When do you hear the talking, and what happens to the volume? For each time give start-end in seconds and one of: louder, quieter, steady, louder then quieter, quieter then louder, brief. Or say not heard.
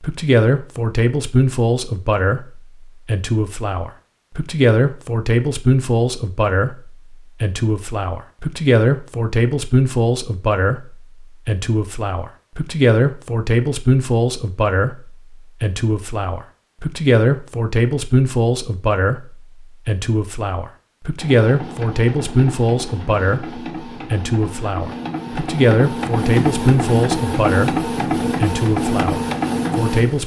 0.0-30.2 steady.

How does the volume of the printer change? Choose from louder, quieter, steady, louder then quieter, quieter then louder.
louder.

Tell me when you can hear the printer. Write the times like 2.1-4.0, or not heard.
21.1-30.2.